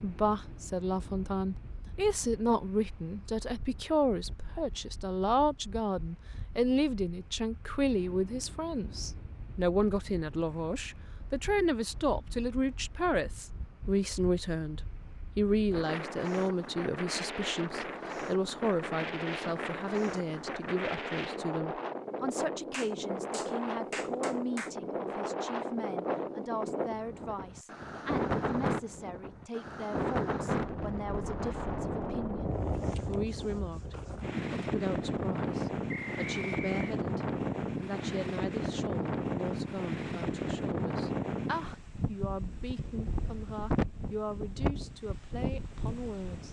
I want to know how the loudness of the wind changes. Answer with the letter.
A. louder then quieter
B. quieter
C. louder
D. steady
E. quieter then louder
C.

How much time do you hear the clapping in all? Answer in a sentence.
You can hear the clapping for 2 seconds altogether.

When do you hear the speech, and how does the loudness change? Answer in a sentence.
The speech can be heard from 0.0 to 46.4 s, getting quieter.